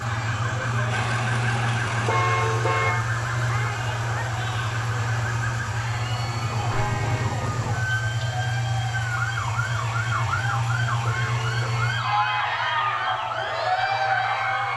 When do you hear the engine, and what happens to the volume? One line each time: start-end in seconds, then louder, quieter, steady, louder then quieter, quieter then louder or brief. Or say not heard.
0.0-14.7 quieter.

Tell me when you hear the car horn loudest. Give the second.
2 s.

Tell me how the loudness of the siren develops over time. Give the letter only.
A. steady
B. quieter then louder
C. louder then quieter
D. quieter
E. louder
A.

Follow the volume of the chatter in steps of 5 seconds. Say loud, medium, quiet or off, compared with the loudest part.
medium, medium, loud.